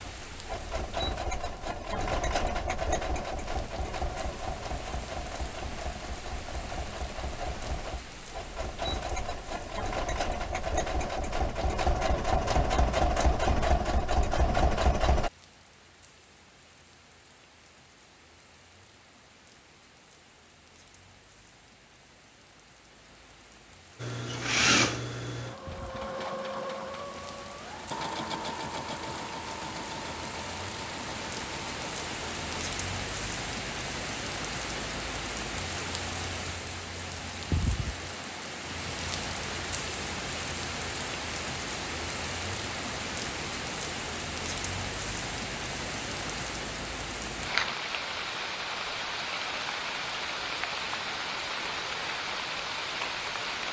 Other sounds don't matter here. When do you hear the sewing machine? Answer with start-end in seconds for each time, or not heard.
0.0-15.3, 24.0-32.5.